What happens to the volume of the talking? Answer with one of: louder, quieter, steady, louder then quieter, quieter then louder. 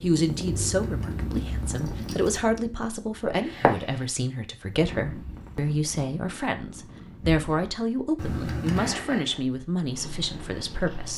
steady.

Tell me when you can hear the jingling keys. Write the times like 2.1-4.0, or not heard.
0.7-2.4, 8.2-8.9.